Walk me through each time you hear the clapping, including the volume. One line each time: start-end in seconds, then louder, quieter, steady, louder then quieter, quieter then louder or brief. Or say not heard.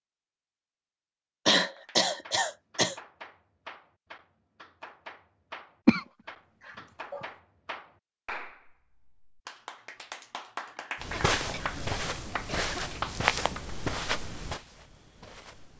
1.6-13.8 louder.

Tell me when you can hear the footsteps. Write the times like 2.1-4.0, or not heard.
11.0-15.7.